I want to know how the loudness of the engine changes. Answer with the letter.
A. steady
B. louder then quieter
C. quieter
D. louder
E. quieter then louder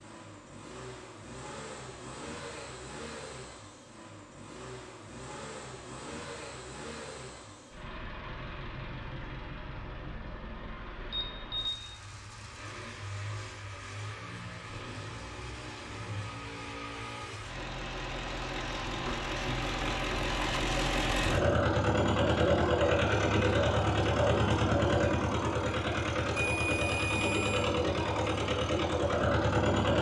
D.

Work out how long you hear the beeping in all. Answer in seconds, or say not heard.
2 s.